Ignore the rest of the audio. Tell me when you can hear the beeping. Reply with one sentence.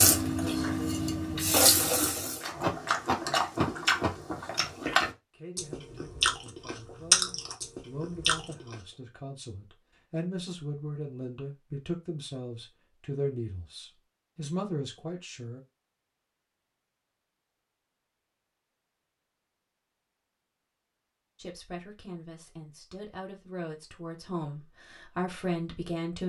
You can't hear the beeping here.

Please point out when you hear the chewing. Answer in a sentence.
You can hear the chewing from 2.2 to 8.8 s.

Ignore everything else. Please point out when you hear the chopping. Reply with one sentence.
The chopping can't be heard in this clip.